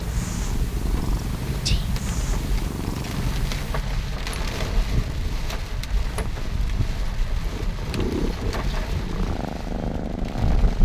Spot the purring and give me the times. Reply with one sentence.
You can hear the purring from 0.0 to 10.8 s.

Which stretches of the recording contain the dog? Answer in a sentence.
The dog can't be heard in this clip.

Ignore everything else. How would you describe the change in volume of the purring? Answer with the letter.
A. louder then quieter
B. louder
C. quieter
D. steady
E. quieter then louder
E.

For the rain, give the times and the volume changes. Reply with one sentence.
You can hear the rain from 0.0 to 10.8 s, at a steady volume.